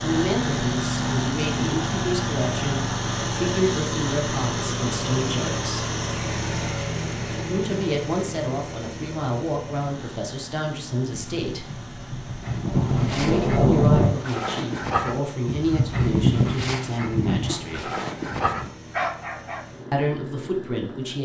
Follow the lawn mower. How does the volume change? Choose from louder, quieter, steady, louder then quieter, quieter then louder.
quieter.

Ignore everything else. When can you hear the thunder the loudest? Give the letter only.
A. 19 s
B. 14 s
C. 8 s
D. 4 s
B.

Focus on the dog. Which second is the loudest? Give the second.
16 s.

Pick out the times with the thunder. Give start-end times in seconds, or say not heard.
11.1-14.1.